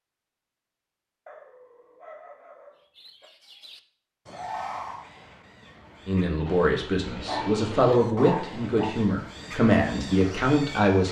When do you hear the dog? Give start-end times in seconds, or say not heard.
1.2-3.2, 7.2-8.9.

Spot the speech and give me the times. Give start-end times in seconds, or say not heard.
6.0-11.0.